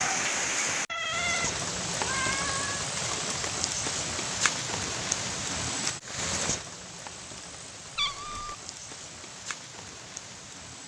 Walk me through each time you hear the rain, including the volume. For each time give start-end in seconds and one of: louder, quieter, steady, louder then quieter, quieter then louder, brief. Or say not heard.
0.0-10.8 quieter.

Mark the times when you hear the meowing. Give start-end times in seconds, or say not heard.
0.8-2.9, 8.0-8.6.